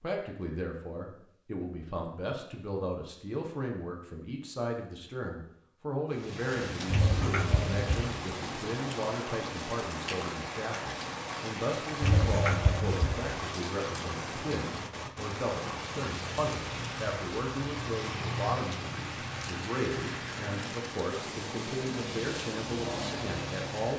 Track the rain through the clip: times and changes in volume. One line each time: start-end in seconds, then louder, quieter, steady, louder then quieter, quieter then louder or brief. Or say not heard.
6.1-23.9 steady.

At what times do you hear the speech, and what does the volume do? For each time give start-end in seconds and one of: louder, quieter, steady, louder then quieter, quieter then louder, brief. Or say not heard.
0.0-23.9 steady.